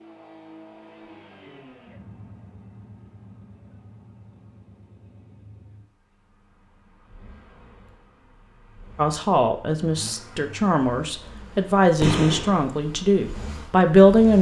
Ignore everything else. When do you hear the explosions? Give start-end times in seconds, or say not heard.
12.0-12.7.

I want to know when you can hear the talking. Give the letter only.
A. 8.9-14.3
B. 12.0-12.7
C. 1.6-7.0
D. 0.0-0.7
A.